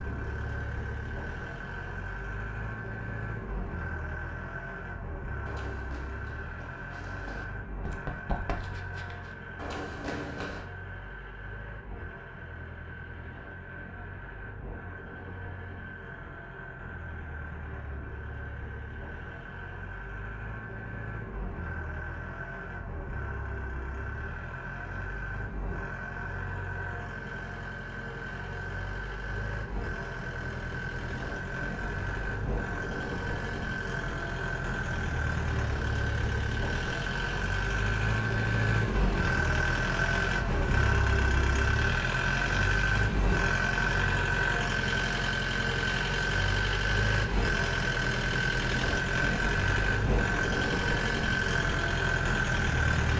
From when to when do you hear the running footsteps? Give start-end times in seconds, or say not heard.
5.5-10.7.